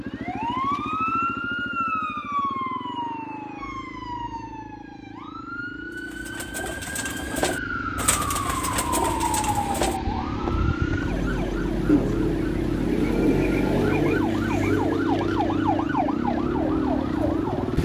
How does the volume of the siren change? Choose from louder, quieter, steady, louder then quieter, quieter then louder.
quieter then louder.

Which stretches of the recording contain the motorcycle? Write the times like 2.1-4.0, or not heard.
0.0-17.8.